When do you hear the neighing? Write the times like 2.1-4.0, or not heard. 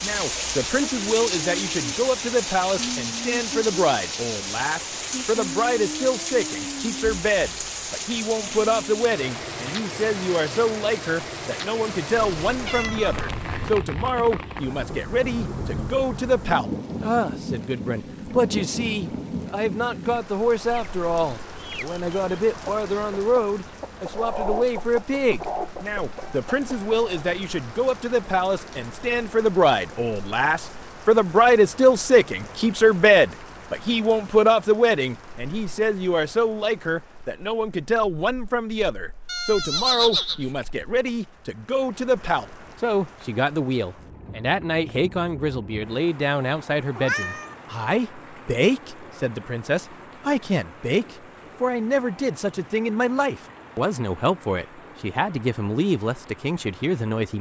39.2-41.1.